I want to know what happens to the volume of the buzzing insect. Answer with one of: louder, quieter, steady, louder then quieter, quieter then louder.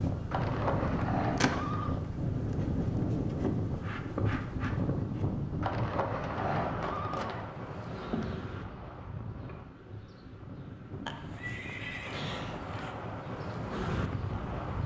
quieter then louder.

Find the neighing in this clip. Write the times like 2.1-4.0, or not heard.
0.3-1.9, 5.6-7.5, 11.1-12.9.